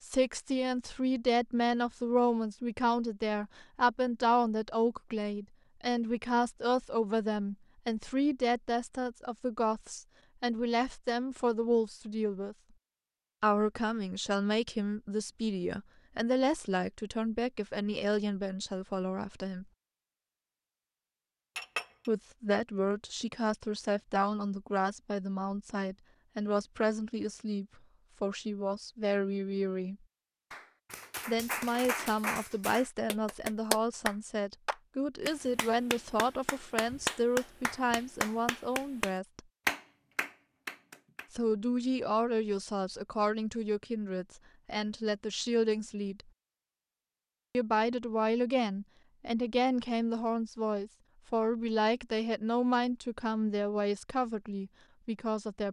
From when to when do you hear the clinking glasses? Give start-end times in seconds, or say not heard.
21.6-22.1.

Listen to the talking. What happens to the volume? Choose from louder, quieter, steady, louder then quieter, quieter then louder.
steady.